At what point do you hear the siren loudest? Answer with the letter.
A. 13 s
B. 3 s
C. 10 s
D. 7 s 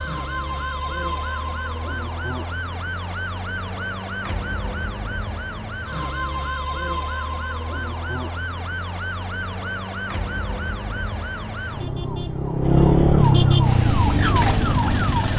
A.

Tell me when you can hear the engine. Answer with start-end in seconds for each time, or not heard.
13.6-15.3.